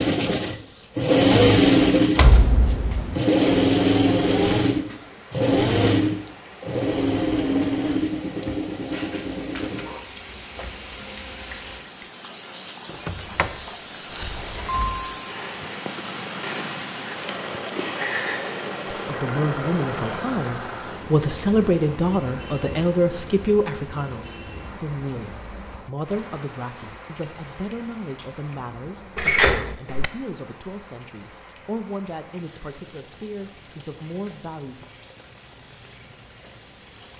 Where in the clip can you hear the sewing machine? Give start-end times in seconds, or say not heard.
0.0-10.1, 17.1-20.4.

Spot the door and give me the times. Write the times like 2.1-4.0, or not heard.
2.1-3.2, 12.9-15.1, 29.1-30.1.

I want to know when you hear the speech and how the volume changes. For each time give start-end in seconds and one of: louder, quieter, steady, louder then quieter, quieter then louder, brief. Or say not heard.
18.9-34.9 quieter.